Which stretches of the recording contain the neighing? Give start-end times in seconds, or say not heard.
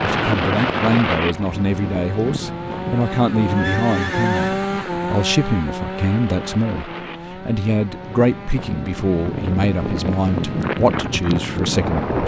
3.5-4.6.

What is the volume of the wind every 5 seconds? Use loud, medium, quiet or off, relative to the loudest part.
loud, medium, loud.